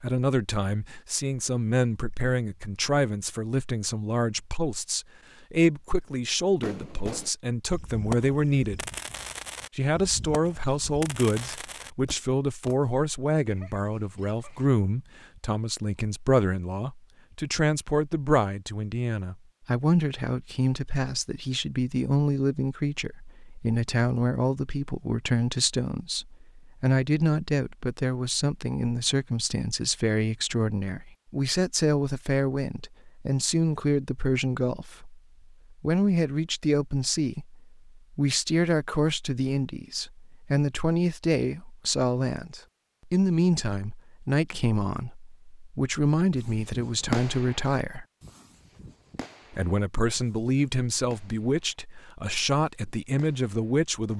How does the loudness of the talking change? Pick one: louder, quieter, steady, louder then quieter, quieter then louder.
steady.